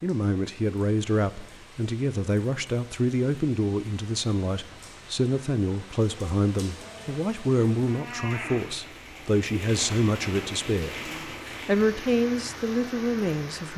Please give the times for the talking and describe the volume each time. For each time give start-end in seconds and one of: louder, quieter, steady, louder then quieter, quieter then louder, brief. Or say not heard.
0.0-13.7 steady.